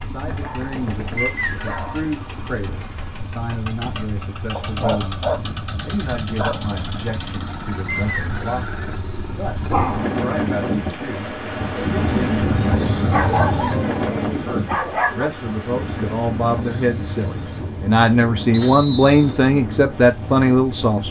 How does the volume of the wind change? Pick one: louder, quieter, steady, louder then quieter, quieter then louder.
louder then quieter.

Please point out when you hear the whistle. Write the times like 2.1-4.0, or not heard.
1.1-1.9, 7.8-8.8, 18.5-19.4.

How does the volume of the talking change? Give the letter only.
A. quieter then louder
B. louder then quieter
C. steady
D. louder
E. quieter
D.